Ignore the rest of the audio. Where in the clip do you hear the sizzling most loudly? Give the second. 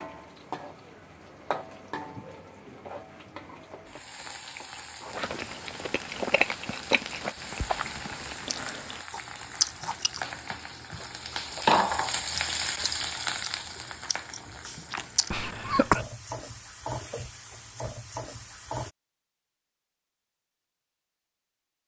12 s.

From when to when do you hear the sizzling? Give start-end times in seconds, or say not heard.
0.0-18.9.